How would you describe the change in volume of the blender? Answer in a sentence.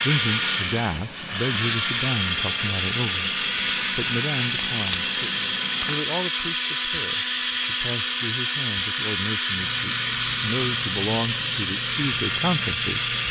The loudness of the blender stays about the same.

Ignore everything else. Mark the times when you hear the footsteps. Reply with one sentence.
The footsteps can't be heard in this clip.